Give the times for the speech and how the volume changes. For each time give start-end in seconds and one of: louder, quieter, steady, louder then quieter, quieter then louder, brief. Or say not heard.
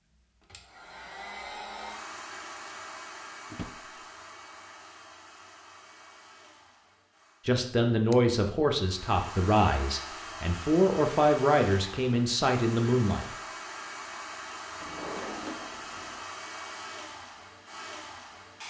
7.5-13.2 steady.